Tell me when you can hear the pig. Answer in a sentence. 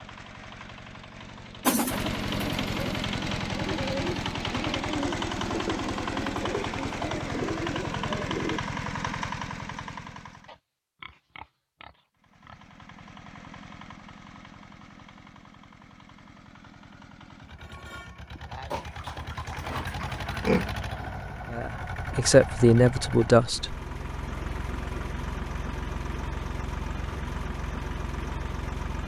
You can hear the pig from 10.4 to 12.7 s and from 18.7 to 20.7 s.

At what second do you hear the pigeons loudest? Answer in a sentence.
The loudest moment of the pigeons is at 2 seconds.